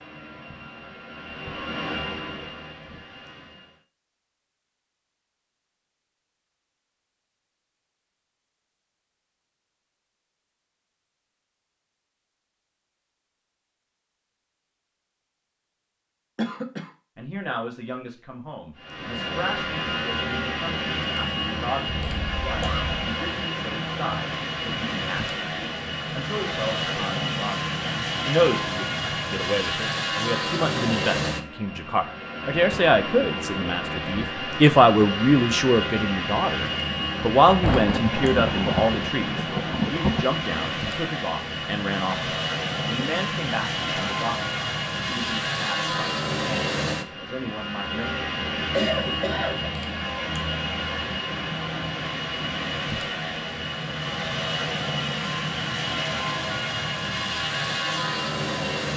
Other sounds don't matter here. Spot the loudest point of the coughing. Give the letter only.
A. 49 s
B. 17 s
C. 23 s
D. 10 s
A.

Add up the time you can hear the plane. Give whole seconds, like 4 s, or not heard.
44 s.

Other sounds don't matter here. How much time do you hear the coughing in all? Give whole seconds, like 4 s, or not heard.
3 s.